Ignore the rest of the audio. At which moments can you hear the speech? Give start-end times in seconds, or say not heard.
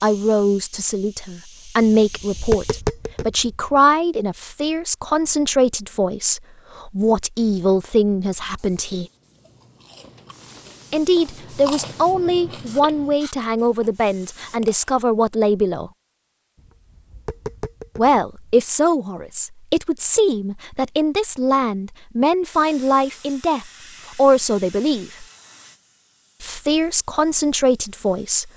0.0-9.1, 10.9-15.9, 17.9-25.2, 26.4-28.5.